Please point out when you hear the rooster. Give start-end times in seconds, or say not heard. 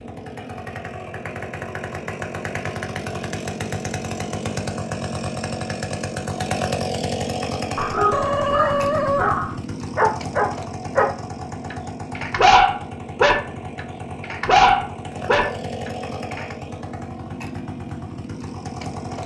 8.1-9.3.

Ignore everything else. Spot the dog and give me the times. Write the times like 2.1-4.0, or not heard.
7.8-16.6.